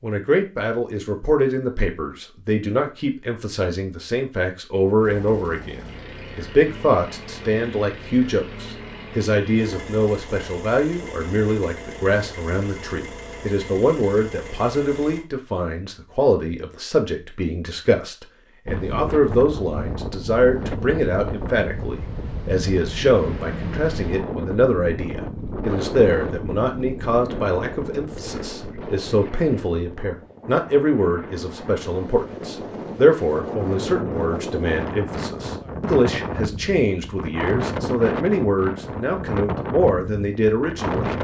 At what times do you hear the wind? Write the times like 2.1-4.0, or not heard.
18.6-41.1.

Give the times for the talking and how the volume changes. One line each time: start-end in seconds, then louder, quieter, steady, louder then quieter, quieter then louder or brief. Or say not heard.
0.0-41.1 steady.